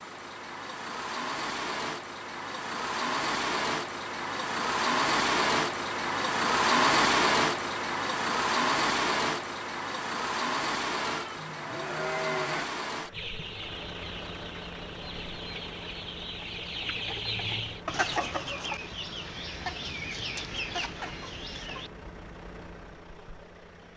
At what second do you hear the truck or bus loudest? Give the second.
7 s.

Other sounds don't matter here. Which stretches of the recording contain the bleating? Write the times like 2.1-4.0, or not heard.
11.2-12.7.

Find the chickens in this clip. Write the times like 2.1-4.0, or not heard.
13.1-21.9.